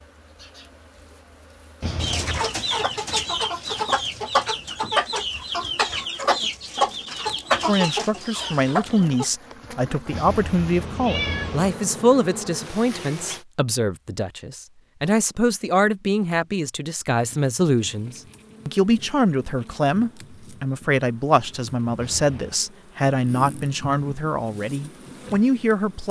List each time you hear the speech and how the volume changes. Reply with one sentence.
You can hear the speech from 7.7 to 26.0 s, at a steady volume.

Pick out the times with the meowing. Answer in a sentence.
The meowing can be heard from 1.8 to 2.5 s, from 10.1 to 11.8 s and from 21.9 to 22.6 s.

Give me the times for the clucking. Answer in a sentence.
The clucking can be heard from 2.0 to 9.2 s.